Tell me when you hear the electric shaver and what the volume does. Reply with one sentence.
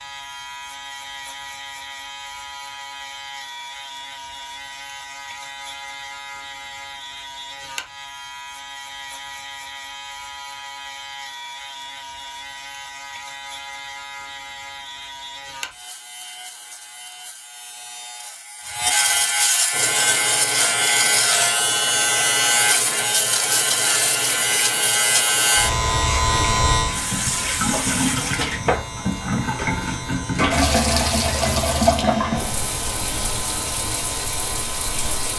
The electric shaver can be heard from 0.0 to 35.3 s, getting louder then quieter.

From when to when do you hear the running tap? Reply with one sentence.
The running tap can be heard from 19.7 to 35.3 s.